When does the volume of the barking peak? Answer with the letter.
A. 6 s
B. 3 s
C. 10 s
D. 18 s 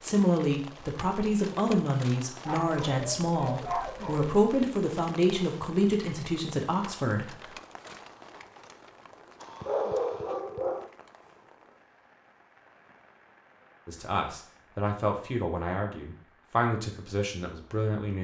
C.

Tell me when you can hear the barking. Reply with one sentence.
The barking can be heard from 2.5 to 4.3 s and from 9.4 to 10.9 s.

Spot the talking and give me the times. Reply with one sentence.
The talking can be heard from 0.0 to 7.3 s and from 13.8 to 18.1 s.